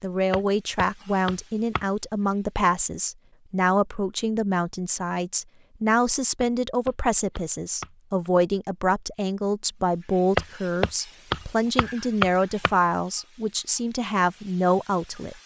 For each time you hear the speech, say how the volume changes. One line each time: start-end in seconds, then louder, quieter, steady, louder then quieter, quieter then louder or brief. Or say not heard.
0.0-15.3 steady.